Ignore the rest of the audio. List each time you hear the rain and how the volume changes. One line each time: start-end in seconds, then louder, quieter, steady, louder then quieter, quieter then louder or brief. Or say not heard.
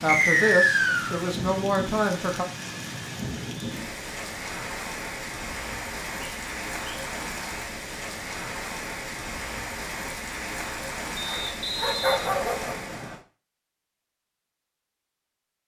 0.0-13.2 steady.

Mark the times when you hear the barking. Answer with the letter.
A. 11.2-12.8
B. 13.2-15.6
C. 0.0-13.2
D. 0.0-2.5
A.